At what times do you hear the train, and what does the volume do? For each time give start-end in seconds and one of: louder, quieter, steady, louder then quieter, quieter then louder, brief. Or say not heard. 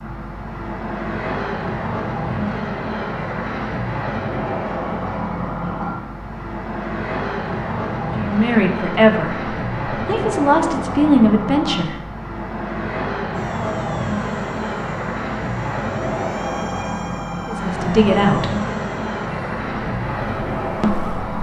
0.0-21.3 steady.